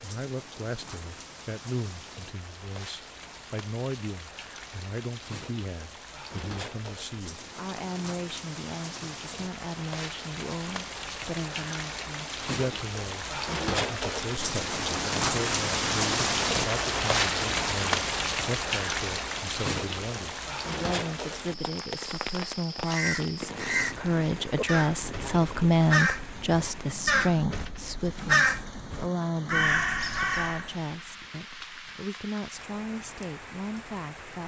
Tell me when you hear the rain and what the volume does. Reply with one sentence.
You can hear the rain from 0.0 to 34.4 s, getting louder then quieter.